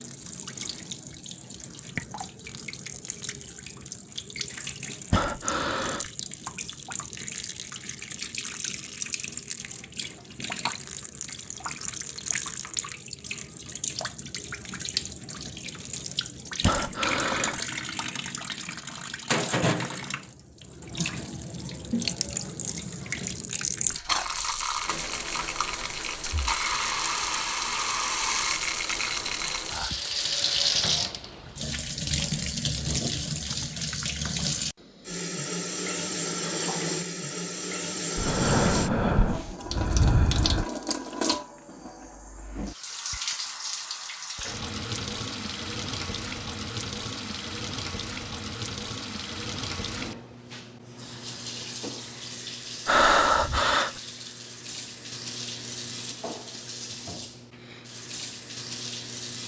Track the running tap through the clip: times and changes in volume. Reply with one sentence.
The running tap can be heard from 0.0 to 59.4 s, getting louder then quieter.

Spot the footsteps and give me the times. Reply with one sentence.
The footsteps can't be heard in this clip.